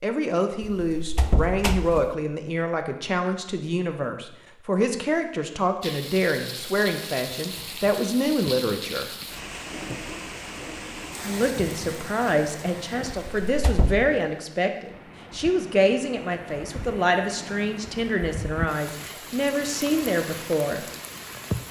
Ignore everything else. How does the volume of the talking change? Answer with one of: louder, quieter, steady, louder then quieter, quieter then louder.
steady.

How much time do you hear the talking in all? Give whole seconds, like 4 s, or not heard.
19 s.